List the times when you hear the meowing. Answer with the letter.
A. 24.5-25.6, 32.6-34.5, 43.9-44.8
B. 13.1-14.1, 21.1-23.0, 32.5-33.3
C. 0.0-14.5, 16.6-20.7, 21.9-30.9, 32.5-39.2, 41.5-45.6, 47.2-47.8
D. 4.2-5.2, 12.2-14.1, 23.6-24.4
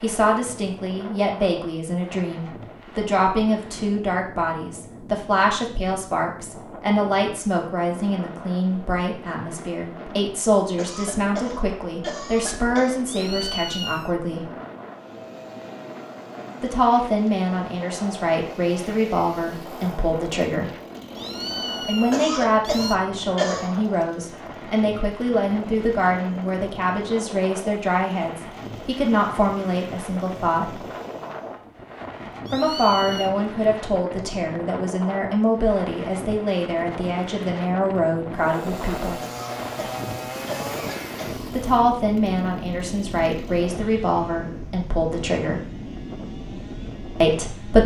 B.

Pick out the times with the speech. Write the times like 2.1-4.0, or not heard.
0.0-14.5, 16.6-20.7, 21.9-30.9, 32.5-39.2, 41.5-45.6, 47.2-47.8.